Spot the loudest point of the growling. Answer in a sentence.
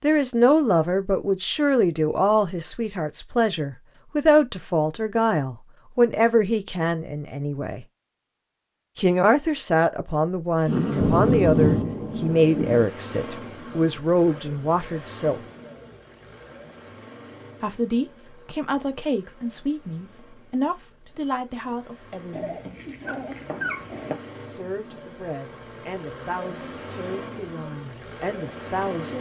The volume of the growling peaks at 11 seconds.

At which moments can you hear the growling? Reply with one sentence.
The growling can be heard from 10.7 to 11.8 s and from 22.3 to 24.2 s.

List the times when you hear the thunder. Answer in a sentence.
The thunder can be heard from 11.0 to 12.8 s.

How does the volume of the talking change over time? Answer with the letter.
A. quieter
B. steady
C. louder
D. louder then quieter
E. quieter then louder
A.